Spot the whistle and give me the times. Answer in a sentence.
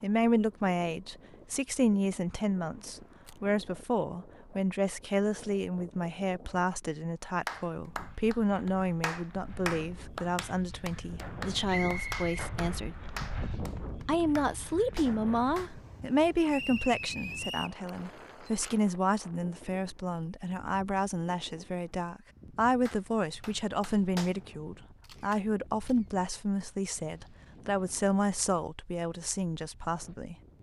The whistle can be heard from 11.7 to 12.3 s and from 16.5 to 17.8 s.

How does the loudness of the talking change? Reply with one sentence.
The loudness of the talking stays about the same.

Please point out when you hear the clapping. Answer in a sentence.
The clapping can be heard from 7.5 to 15.8 s and from 22.9 to 24.4 s.